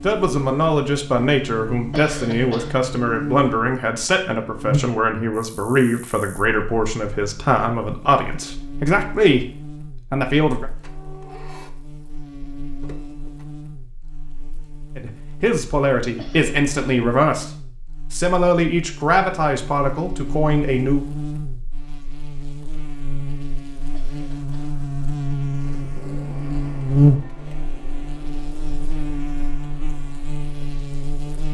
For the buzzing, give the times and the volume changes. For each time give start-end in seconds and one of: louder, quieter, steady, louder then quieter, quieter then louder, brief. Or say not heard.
0.0-31.5 quieter then louder.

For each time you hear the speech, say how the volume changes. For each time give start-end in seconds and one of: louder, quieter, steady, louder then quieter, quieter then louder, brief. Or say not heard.
0.0-10.7 steady
14.9-17.5 brief
18.1-21.1 brief.